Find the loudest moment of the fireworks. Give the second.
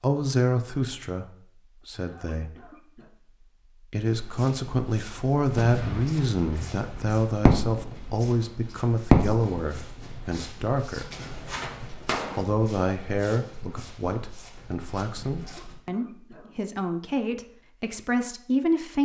9 s.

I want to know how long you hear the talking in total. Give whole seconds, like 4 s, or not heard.
17 s.